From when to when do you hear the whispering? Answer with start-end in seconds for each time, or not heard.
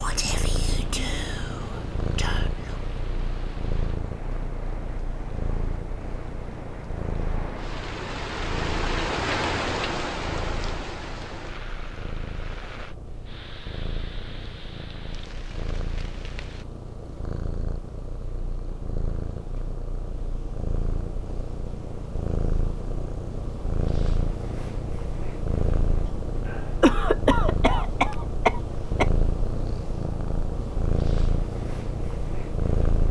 0.0-3.0.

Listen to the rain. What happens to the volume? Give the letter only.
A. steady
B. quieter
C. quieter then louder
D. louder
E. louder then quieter
E.